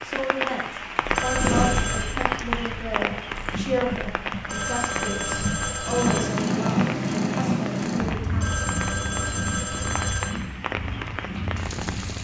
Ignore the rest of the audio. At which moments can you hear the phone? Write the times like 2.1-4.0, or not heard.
1.1-2.2, 4.5-6.3, 8.3-10.3.